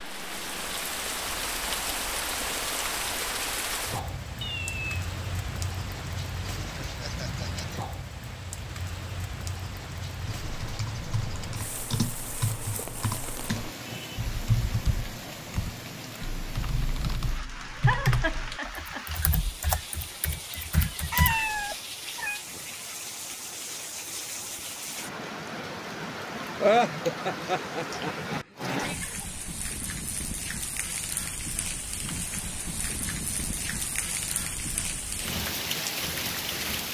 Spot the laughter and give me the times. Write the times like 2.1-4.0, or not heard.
6.8-7.7, 17.9-19.4, 26.6-28.9.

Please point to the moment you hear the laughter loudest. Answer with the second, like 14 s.
27 s.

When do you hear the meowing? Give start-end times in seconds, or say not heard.
4.4-4.8, 21.1-22.4, 28.5-29.2.